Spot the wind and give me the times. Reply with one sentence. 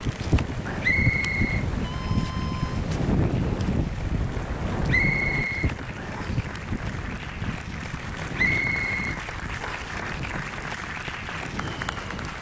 You can hear the wind from 0.0 to 12.3 s.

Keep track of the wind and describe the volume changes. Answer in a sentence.
The volume of the wind goes down.